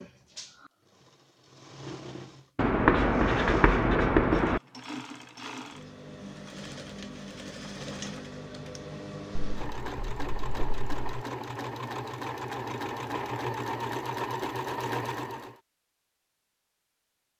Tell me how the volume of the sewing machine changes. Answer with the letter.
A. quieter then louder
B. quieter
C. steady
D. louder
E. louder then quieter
D.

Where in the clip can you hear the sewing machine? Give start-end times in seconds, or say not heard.
0.0-15.6.